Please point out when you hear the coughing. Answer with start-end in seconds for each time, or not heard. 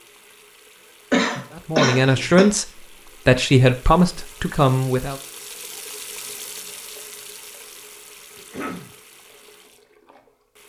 1.1-2.5, 8.3-8.9.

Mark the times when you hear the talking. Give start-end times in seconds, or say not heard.
1.6-5.2.